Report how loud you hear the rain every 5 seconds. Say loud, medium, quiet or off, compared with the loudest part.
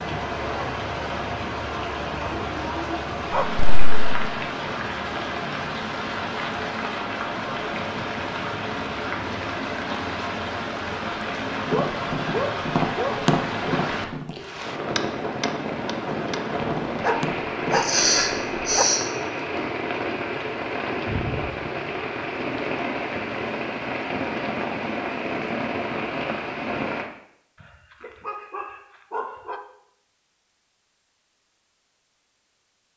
loud, loud, loud, loud, loud, loud, off.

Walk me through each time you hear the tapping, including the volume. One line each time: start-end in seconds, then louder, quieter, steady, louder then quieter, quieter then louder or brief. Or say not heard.
11.7-17.9 quieter.